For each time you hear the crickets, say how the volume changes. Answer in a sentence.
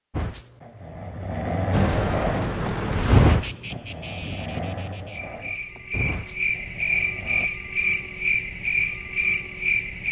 You can hear the crickets from 1.7 to 10.0 s, getting quieter then louder.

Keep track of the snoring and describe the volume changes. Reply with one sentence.
The loudness of the snoring goes up, then down.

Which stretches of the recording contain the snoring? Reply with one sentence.
You can hear the snoring from 0.1 to 7.5 s.